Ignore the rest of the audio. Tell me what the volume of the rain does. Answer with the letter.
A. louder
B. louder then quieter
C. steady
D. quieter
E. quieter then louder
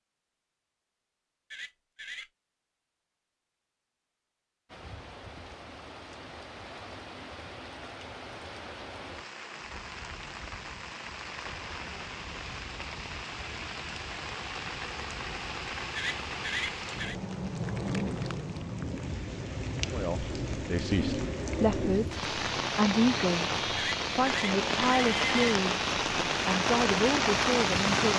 A.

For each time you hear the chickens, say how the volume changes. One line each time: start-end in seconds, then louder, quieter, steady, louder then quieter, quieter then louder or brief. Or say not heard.
not heard.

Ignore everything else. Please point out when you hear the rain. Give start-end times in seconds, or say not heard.
4.7-28.1.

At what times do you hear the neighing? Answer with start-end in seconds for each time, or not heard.
1.5-2.3, 15.9-17.1, 23.8-25.6.